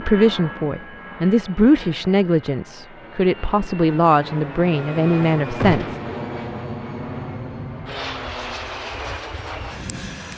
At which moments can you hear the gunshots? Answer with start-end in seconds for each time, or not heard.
5.6-6.1.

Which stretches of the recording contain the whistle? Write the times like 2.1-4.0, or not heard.
not heard.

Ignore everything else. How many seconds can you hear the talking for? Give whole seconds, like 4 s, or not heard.
6 s.